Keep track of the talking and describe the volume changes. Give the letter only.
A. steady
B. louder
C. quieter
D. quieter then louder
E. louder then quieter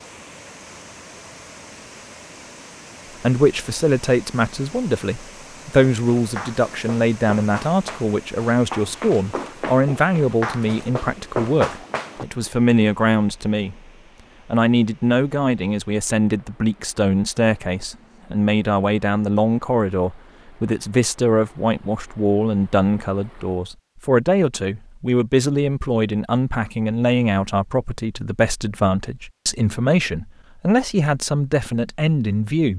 A.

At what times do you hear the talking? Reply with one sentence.
The talking can be heard from 3.2 to 13.8 s and from 14.4 to 32.7 s.